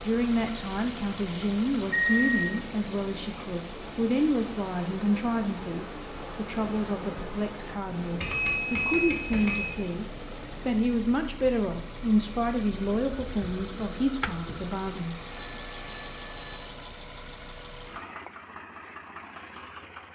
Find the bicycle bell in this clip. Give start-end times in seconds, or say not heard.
1.9-2.6, 8.2-9.8, 15.3-16.6.